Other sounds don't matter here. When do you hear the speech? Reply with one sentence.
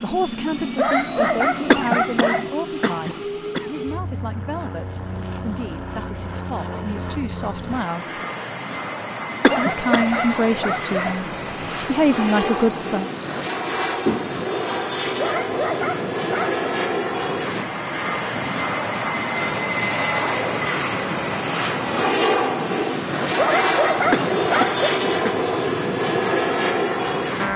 The speech can be heard from 0.0 to 8.2 s and from 9.6 to 13.1 s.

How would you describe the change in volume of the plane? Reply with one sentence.
The loudness of the plane goes up.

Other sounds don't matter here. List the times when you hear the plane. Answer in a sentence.
You can hear the plane from 0.0 to 27.5 s.